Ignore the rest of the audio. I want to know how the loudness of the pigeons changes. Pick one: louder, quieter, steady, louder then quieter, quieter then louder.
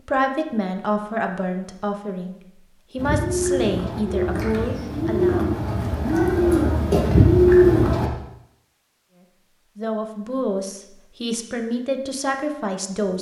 louder.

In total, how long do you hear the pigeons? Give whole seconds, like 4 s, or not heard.
5 s.